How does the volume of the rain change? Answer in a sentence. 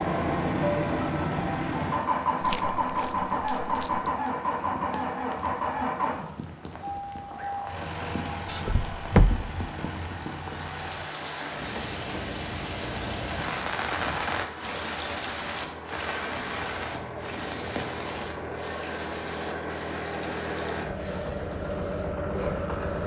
The volume of the rain goes up, then down.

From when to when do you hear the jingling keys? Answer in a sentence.
You can hear the jingling keys from 2.4 to 4.1 s, from 8.4 to 9.8 s and from 16.3 to 18.6 s.